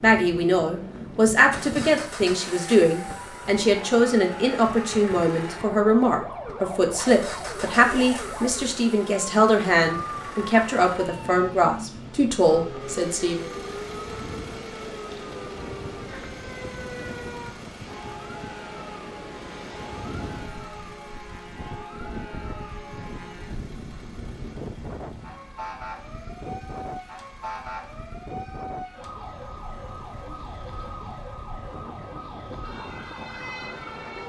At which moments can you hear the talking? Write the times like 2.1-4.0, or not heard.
0.0-13.4.